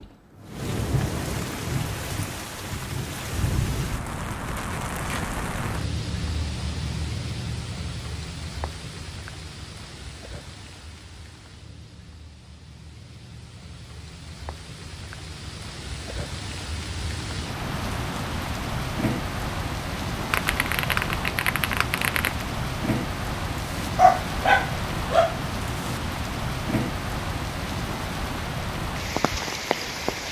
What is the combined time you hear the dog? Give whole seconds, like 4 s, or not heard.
2 s.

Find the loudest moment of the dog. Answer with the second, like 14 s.
24 s.